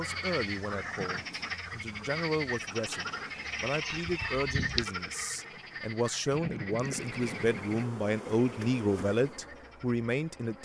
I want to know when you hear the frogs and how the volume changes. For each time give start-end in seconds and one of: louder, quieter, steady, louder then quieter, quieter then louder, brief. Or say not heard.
0.0-10.6 quieter.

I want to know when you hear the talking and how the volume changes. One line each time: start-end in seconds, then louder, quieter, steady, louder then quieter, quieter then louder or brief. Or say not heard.
0.0-10.6 louder.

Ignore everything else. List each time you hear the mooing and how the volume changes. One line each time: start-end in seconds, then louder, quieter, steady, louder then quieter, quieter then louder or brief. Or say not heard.
not heard.